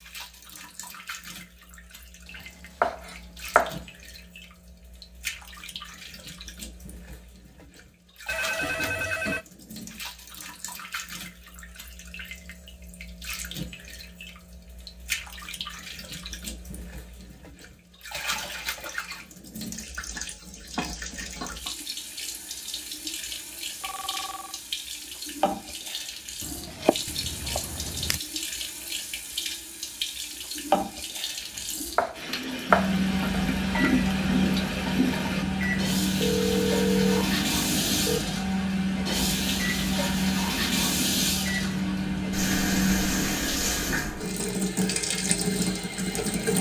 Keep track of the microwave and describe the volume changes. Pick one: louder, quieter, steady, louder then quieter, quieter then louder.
steady.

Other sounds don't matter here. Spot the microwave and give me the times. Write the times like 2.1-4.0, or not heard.
32.6-43.4.